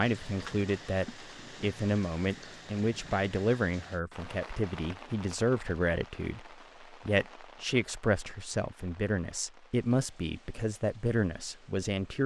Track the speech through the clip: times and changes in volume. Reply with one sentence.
The speech can be heard from 0.0 to 12.2 s, at a steady volume.